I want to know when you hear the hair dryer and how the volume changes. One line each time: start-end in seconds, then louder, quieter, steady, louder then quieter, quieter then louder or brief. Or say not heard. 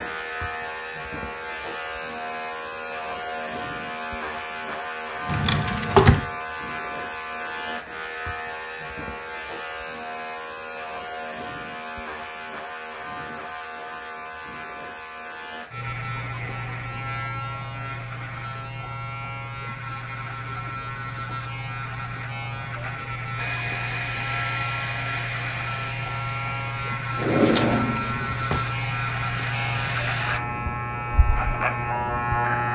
23.4-30.4 quieter then louder.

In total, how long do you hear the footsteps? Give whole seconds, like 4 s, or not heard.
not heard.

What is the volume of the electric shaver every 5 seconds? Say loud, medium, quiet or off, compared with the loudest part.
medium, medium, medium, medium, medium, loud, loud.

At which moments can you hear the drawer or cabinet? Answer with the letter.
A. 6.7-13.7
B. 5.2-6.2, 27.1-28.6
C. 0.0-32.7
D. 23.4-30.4
B.